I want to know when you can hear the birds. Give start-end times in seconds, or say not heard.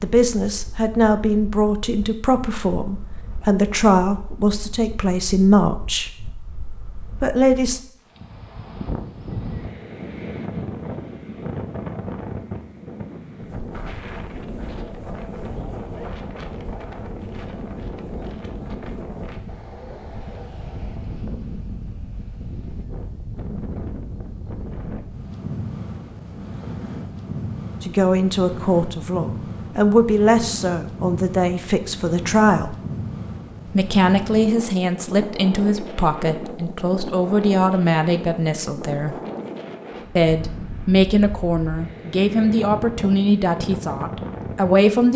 not heard.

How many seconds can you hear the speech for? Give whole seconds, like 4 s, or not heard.
22 s.